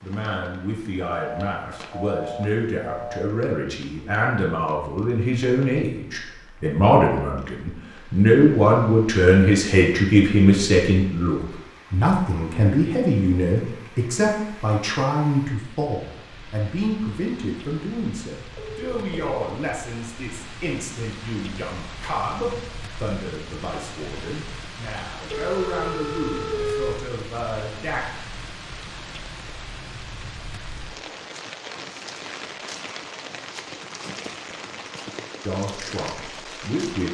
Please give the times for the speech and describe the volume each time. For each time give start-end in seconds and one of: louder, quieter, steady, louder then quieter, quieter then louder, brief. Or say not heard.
0.0-28.0 louder then quieter
35.5-37.0 brief.